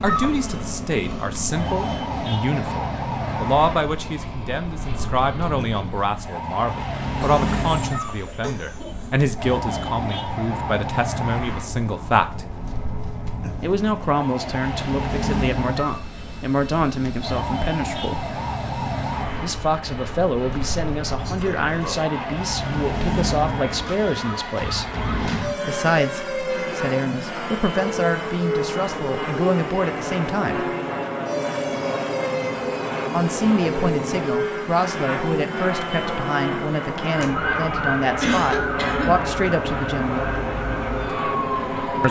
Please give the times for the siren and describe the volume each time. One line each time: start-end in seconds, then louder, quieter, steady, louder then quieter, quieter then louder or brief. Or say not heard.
0.0-42.0 steady.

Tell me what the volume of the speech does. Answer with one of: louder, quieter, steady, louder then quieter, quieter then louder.
steady.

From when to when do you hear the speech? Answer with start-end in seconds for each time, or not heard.
0.0-12.4, 13.6-18.3, 19.4-24.9, 25.6-30.6, 33.1-40.4.